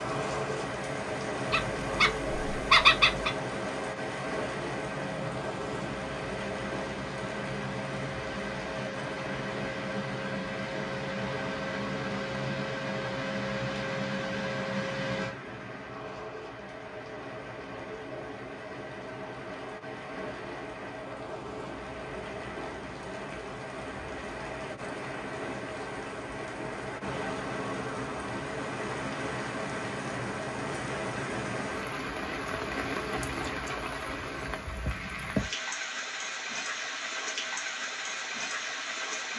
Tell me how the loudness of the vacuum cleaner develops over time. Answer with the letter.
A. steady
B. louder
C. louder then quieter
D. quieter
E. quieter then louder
B.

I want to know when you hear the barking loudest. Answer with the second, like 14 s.
3 s.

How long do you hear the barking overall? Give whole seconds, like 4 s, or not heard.
2 s.